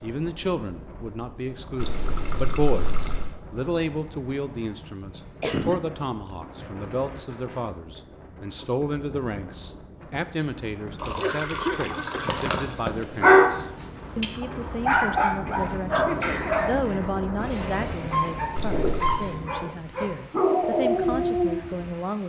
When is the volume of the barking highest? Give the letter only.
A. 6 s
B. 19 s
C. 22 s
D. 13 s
D.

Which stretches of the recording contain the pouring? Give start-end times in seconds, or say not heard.
1.8-3.4, 10.9-12.8, 18.6-19.1.